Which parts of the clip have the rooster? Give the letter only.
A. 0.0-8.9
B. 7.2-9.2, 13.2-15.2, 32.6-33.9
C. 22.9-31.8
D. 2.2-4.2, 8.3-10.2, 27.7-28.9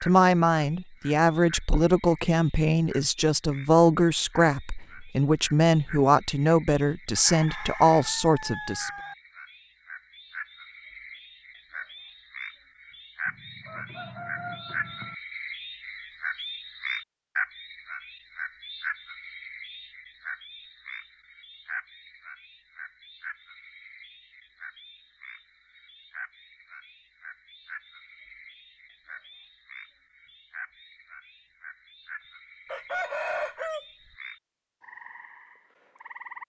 B.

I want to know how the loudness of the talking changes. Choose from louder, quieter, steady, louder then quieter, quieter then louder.
steady.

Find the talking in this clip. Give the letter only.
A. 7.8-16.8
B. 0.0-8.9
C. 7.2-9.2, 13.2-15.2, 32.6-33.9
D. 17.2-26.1
B.